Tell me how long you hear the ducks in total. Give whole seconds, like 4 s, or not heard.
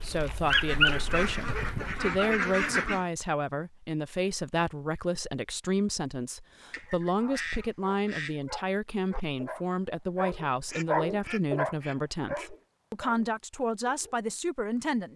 6 s.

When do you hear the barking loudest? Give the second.
1 s.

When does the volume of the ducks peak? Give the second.
3 s.